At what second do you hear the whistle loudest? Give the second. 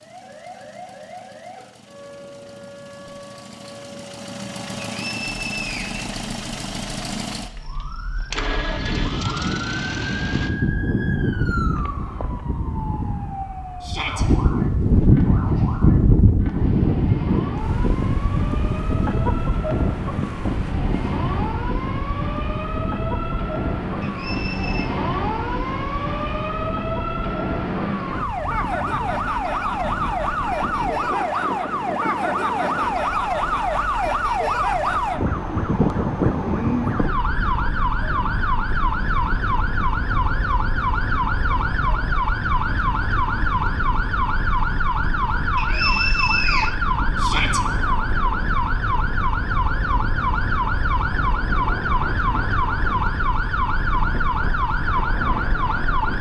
46 s.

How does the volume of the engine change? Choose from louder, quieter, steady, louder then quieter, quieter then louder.
louder.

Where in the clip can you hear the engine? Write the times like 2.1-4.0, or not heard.
0.0-10.5.